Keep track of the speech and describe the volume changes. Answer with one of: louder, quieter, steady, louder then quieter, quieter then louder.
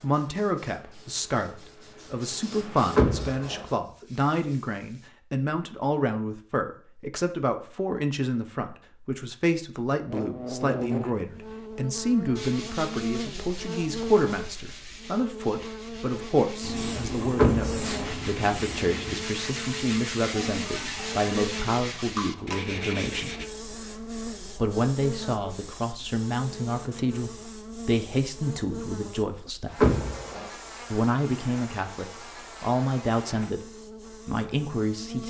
steady.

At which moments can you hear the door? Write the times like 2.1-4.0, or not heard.
3.0-3.6, 17.4-18.1, 29.8-30.5.